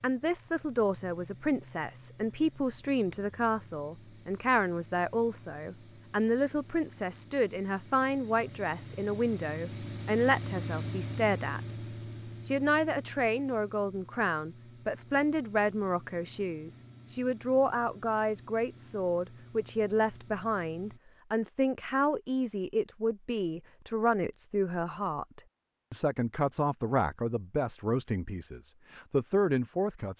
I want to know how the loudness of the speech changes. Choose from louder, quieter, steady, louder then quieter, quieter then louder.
steady.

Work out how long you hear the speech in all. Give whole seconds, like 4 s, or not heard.
29 s.